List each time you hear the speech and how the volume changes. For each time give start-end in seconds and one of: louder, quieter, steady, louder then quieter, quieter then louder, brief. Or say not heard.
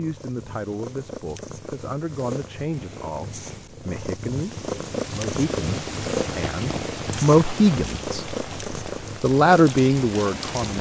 0.0-8.3 louder
9.2-10.7 brief.